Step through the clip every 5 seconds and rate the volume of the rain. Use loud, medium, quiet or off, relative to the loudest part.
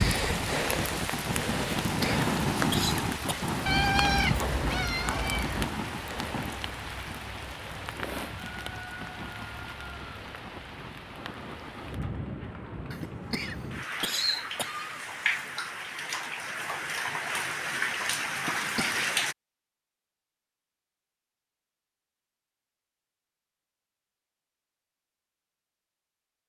loud, medium, medium, loud, off, off.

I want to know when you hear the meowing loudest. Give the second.
4 s.